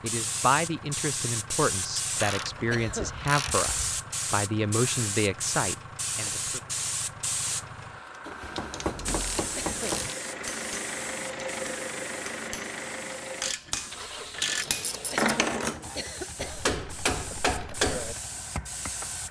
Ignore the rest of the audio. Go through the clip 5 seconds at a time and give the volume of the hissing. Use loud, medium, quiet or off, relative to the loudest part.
loud, loud, medium, medium.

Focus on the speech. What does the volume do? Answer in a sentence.
The volume of the speech stays about the same.